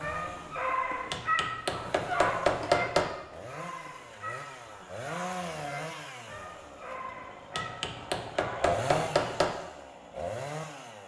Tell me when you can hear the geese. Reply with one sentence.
You can't hear the geese here.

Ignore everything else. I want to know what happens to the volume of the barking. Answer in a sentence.
The loudness of the barking goes down.